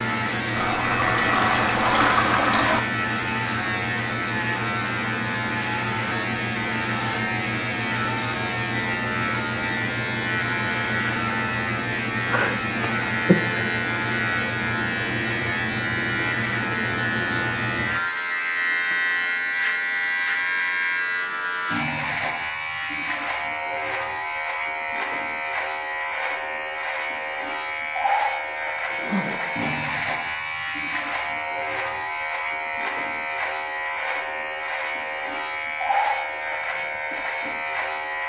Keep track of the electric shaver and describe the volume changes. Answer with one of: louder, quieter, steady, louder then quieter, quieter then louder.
steady.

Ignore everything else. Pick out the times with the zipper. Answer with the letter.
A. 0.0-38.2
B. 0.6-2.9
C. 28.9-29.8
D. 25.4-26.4
C.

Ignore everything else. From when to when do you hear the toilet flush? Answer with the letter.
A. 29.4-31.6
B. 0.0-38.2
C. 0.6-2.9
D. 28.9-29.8
C.